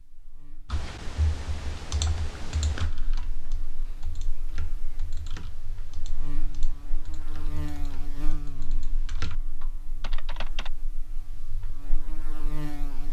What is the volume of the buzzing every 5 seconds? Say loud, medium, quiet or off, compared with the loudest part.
quiet, loud, loud.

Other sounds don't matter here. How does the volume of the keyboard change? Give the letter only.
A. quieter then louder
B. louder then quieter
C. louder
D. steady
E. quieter
A.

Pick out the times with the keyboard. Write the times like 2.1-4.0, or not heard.
0.7-10.7.